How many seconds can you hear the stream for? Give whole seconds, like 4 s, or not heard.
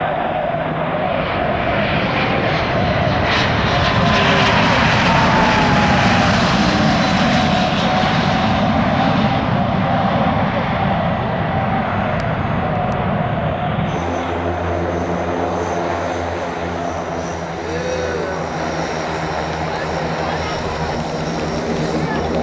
not heard.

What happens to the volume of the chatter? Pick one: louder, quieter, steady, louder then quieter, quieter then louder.
quieter.